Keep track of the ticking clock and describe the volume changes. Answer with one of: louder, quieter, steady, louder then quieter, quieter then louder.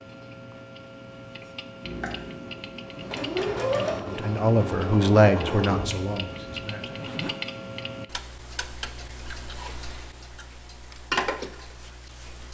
louder.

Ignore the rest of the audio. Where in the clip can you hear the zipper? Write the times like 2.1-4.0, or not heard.
6.8-7.3.